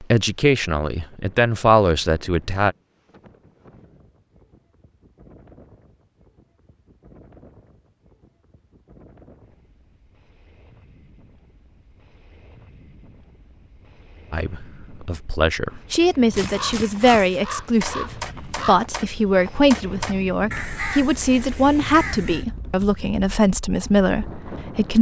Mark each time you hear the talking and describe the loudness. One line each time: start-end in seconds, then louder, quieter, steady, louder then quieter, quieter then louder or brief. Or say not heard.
0.0-2.8 brief
14.3-24.9 steady.